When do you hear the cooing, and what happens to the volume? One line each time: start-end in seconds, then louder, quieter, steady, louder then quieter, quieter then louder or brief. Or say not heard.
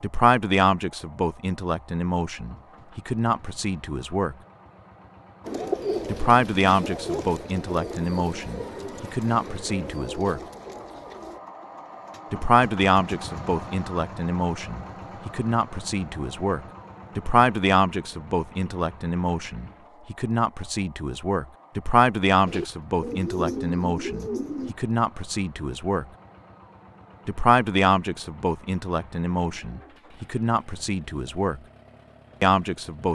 5.4-11.4 quieter
22.4-24.8 brief.